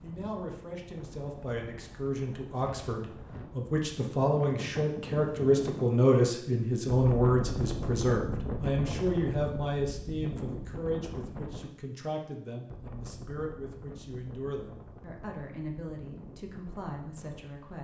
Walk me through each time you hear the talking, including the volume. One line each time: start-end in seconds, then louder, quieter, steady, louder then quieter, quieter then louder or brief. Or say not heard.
0.0-17.7 louder then quieter.